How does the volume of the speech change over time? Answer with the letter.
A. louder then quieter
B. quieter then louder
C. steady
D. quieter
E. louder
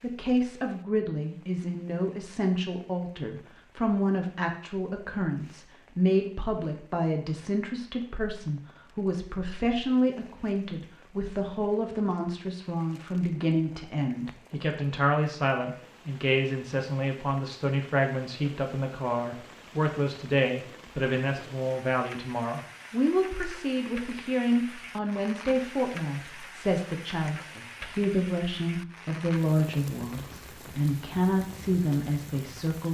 C.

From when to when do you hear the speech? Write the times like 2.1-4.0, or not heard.
0.0-32.8.